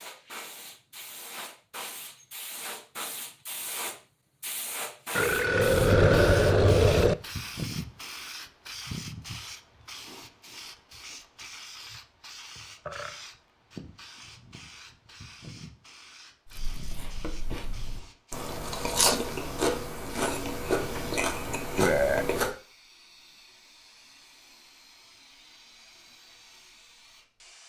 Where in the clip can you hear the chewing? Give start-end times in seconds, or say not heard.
16.4-22.5.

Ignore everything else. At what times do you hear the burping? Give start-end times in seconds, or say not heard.
5.2-7.2, 12.6-13.2, 21.8-22.2.